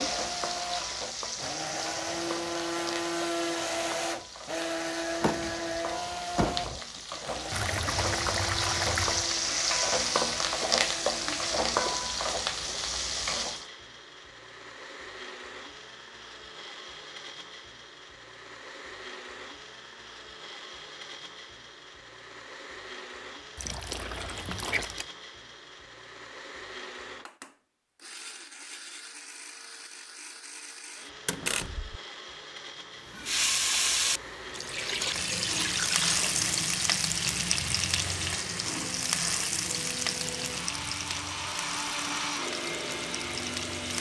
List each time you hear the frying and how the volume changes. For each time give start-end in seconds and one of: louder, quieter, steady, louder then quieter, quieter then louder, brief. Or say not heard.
0.0-13.7 quieter then louder
33.1-43.9 quieter.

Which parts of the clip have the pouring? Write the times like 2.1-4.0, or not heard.
7.5-9.3, 23.6-25.1, 34.5-36.5.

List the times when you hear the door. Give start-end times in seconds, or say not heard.
5.2-6.8, 31.2-32.0.